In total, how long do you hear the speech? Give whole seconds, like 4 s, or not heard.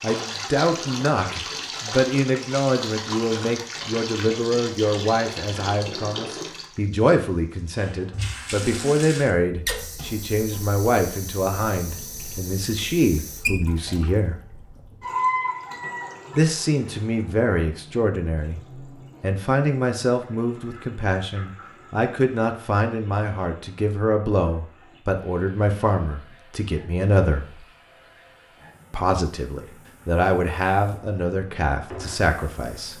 30 s.